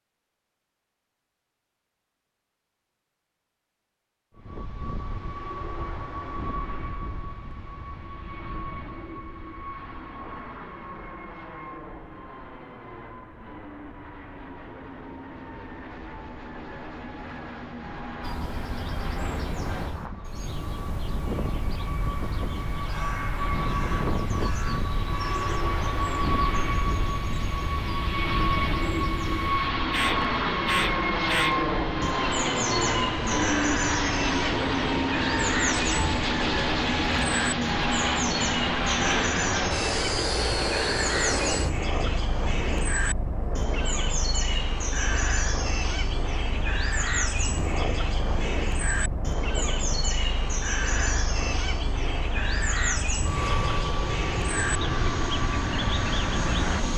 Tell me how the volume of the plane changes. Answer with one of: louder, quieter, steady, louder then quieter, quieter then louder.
louder then quieter.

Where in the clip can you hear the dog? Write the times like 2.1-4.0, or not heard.
not heard.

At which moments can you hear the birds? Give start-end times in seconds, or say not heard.
18.2-56.8.